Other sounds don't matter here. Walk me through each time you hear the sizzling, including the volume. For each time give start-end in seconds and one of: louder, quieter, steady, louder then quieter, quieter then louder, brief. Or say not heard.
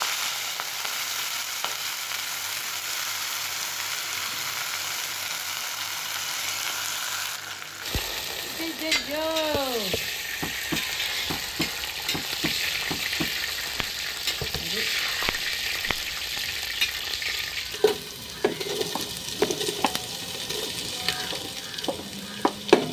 0.0-22.8 steady.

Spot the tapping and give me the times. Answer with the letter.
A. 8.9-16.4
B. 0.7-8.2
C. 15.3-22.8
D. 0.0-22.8
A.